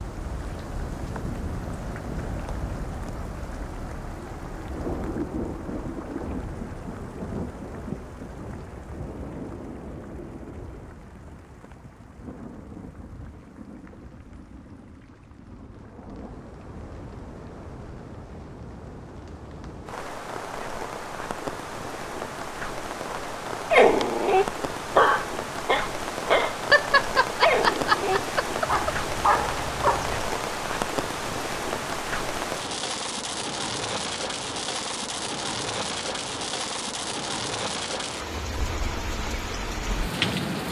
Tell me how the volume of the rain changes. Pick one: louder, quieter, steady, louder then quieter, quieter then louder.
quieter then louder.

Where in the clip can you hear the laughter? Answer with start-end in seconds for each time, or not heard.
26.7-28.9.